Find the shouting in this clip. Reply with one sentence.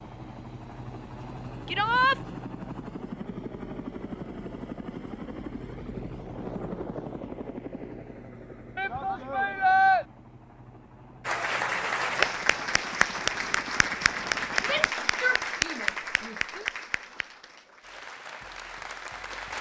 You can hear the shouting from 1.6 to 2.2 s, from 8.8 to 10.1 s and from 14.6 to 16.6 s.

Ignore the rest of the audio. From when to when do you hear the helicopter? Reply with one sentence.
The helicopter can be heard from 0.0 to 14.9 s.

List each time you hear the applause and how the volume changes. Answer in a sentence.
The applause can be heard from 11.2 to 19.5 s, getting quieter.